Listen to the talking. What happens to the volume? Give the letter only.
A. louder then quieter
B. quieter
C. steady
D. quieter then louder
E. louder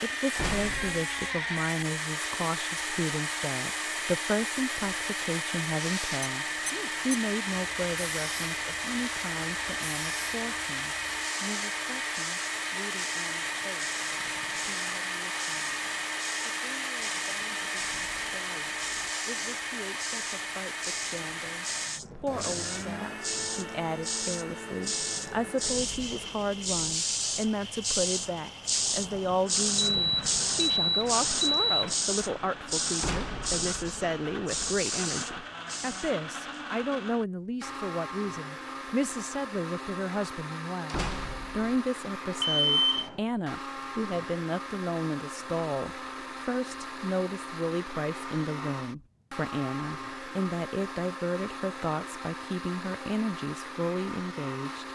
D.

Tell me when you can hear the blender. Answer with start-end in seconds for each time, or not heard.
0.0-54.8.